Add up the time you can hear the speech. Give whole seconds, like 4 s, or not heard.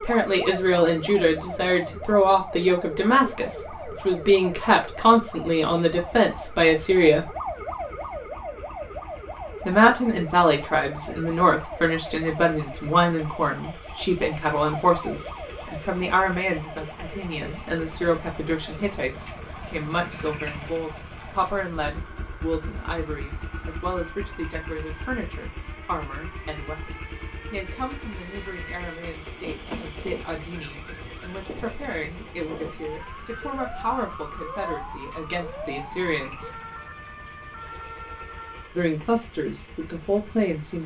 36 s.